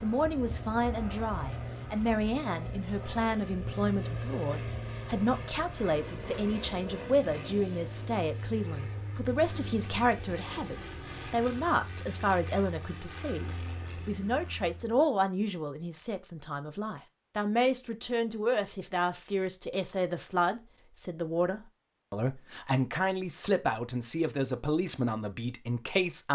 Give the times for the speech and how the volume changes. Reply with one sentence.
You can hear the speech from 0.0 to 26.3 s, at a steady volume.